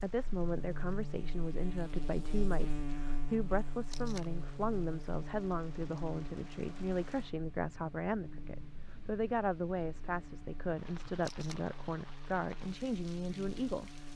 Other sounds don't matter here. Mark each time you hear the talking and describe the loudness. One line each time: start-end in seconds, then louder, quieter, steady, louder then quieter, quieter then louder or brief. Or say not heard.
0.0-13.9 steady.